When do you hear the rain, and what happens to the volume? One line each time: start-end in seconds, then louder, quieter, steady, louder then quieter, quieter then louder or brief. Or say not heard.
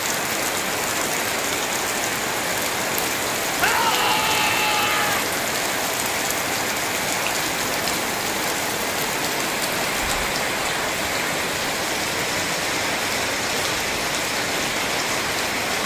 0.0-15.8 steady.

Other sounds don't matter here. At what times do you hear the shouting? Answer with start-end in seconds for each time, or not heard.
3.5-5.2.